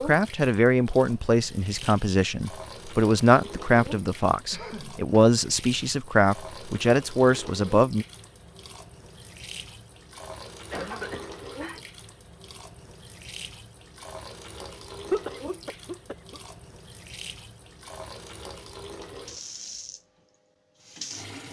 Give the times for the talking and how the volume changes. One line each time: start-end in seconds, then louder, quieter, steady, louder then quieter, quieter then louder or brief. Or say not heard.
0.0-8.1 steady.